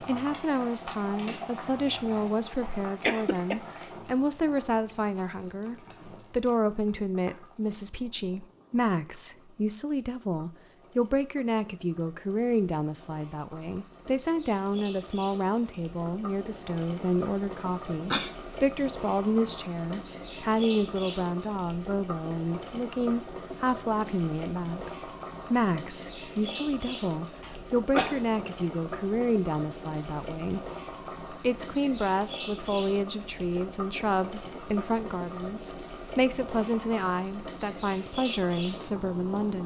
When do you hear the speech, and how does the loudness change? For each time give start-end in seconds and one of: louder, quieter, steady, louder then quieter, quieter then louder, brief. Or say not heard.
0.0-30.6 steady
31.3-39.6 steady.